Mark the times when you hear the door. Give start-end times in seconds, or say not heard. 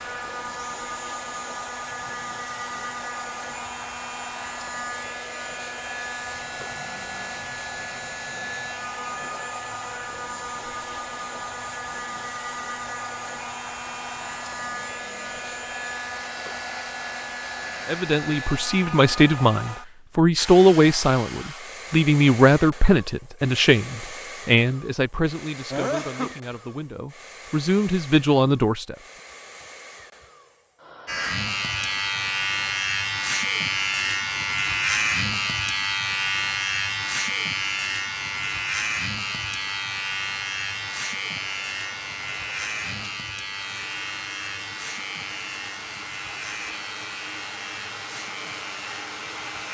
not heard.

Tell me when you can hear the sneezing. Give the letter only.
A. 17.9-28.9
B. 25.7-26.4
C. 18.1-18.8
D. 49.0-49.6
B.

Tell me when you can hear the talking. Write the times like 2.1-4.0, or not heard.
17.9-28.9.